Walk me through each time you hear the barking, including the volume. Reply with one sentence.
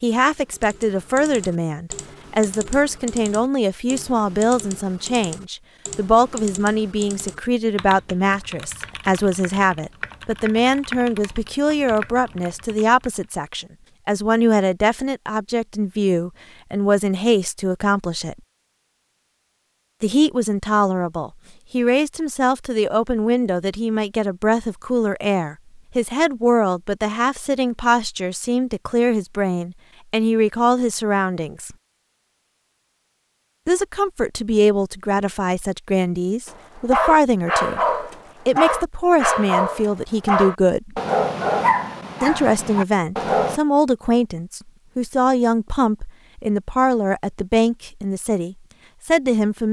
You can hear the barking from 36.5 to 43.6 s, getting quieter.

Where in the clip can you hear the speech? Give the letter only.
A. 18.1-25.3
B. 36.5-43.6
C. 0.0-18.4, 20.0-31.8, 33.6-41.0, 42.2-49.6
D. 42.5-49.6
C.